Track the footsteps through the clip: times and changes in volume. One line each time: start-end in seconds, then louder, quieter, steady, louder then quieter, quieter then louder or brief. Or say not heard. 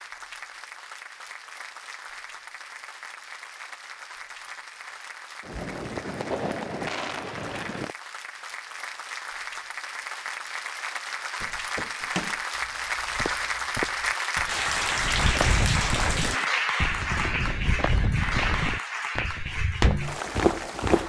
11.4-21.0 louder.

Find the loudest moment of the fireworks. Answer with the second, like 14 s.
6 s.